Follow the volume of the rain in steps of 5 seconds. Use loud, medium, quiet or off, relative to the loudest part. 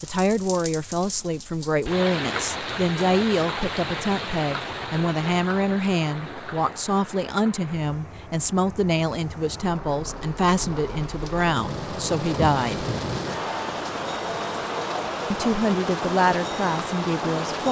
loud, medium, loud, loud.